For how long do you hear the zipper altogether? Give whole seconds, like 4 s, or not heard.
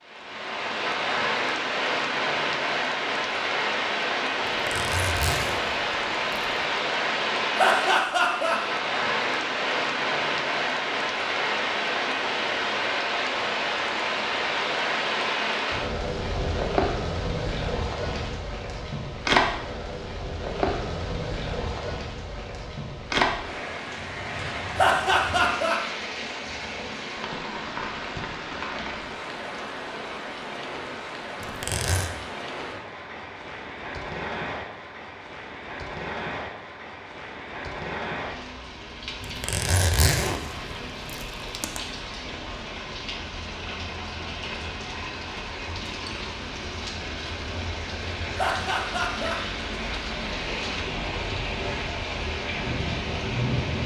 6 s.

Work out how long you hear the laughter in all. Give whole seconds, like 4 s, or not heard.
3 s.